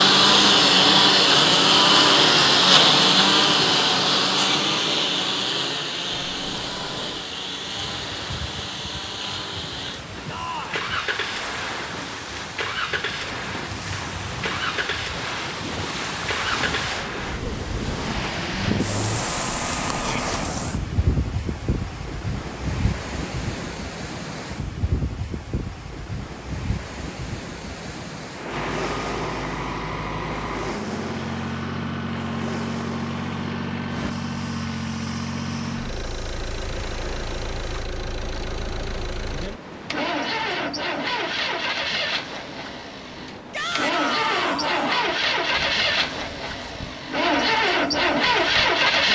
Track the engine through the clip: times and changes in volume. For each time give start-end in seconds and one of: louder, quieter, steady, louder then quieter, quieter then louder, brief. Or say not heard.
0.0-20.6 quieter
28.4-49.0 louder.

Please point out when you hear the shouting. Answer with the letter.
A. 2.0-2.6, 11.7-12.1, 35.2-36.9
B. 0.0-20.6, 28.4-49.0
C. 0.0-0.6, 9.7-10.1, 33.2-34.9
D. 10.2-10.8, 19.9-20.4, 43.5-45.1
D.